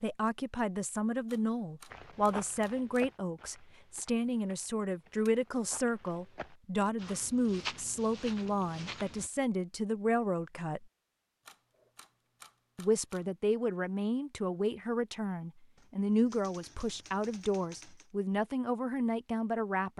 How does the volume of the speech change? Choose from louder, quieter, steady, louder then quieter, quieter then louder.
steady.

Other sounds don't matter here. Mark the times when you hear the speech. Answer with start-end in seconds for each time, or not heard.
0.0-10.8, 12.8-19.9.